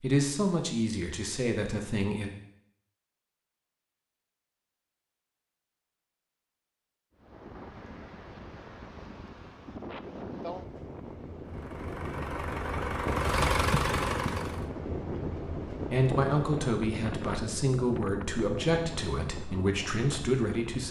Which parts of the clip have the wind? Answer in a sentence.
You can hear the wind from 7.2 to 20.8 s.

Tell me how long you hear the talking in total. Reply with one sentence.
You can hear the talking for 7 seconds altogether.